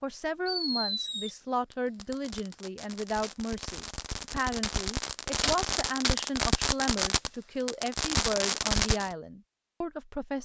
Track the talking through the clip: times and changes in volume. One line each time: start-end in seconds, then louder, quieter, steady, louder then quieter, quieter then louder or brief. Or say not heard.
0.0-10.3 steady.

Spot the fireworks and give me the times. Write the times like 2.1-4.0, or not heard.
0.5-9.2.